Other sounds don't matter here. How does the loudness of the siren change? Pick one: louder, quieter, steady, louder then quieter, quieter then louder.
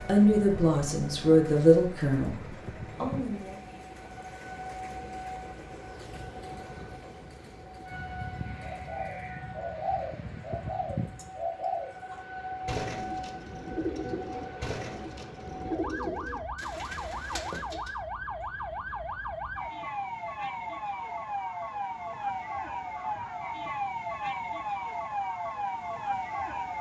louder.